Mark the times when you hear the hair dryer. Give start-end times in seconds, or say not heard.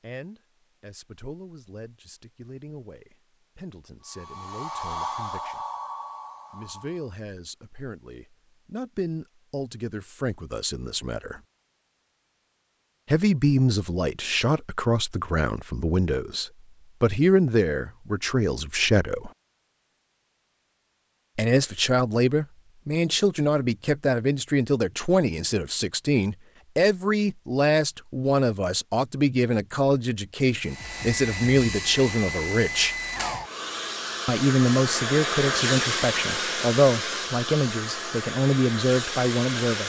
4.0-7.2, 30.6-39.8.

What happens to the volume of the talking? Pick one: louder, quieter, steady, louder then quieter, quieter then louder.
louder.